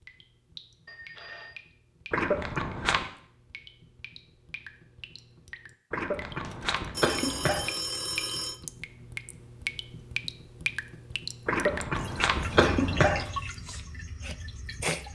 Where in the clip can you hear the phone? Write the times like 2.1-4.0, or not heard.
0.8-1.6, 6.4-8.6, 12.6-13.1.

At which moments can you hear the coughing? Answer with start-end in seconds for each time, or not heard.
2.1-3.0, 5.9-7.7, 11.4-13.2.